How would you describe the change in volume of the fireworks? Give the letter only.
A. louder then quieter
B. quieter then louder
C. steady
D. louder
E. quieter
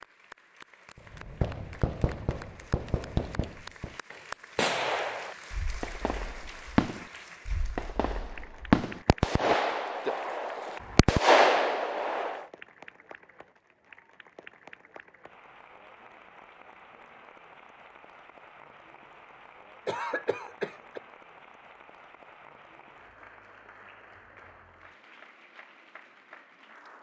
D.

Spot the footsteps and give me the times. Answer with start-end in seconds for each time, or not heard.
not heard.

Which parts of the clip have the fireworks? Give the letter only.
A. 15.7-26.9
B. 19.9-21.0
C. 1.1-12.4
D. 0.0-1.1
C.